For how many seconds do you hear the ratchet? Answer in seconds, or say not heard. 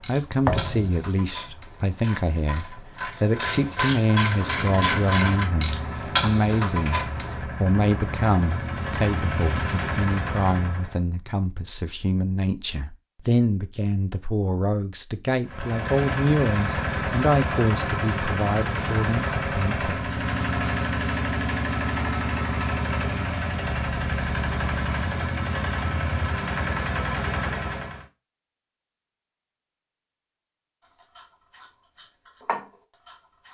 10 s.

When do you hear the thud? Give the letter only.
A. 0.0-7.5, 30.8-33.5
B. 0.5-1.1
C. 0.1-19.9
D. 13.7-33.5
B.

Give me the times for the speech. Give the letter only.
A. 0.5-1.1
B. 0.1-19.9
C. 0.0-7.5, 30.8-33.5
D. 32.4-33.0
B.